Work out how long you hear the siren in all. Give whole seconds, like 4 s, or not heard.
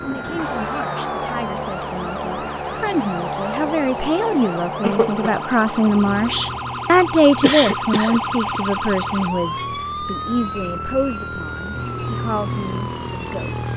14 s.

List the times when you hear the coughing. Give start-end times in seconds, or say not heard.
4.8-5.2, 7.4-8.6.